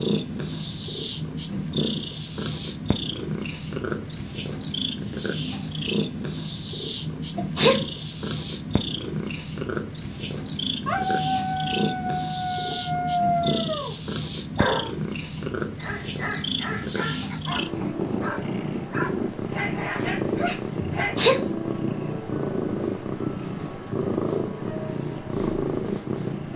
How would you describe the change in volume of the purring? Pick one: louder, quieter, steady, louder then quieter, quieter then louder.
steady.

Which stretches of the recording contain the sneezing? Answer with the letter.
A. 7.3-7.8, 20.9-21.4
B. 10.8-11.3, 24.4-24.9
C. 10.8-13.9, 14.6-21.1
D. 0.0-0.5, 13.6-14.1
A.